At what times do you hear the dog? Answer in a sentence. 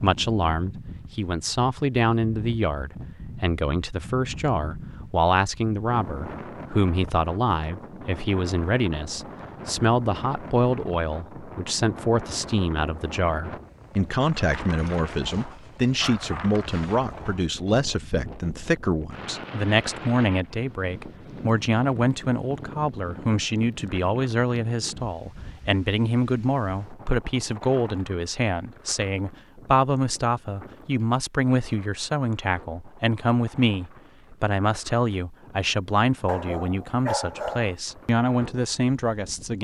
You can hear the dog from 14.6 to 17.0 s and from 36.2 to 37.8 s.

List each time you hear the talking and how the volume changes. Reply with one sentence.
You can hear the talking from 0.0 to 39.5 s, at a steady volume.